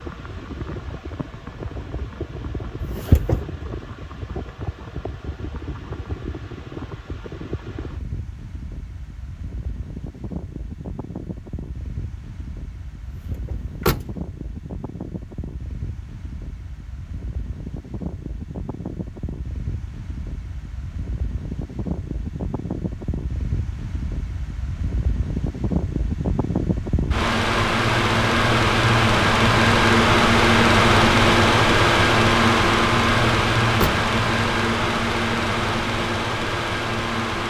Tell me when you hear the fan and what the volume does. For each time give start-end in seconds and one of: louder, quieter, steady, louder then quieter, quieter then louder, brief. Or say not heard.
0.0-37.4 louder.